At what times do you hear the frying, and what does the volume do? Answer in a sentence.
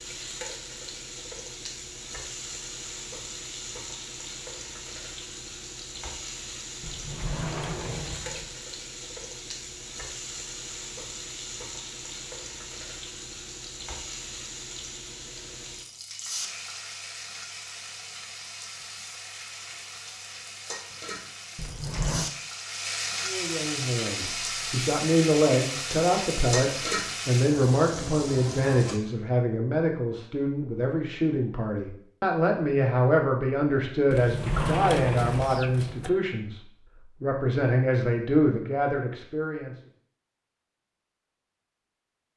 You can hear the frying from 0.0 to 29.0 s, getting louder.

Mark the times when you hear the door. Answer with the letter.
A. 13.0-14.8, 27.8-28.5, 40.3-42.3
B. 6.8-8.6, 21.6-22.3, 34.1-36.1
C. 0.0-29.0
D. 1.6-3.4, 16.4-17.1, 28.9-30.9
B.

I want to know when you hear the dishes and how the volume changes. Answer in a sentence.
You can't hear the dishes here.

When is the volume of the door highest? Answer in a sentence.
The loudest moment of the door is at 35 seconds.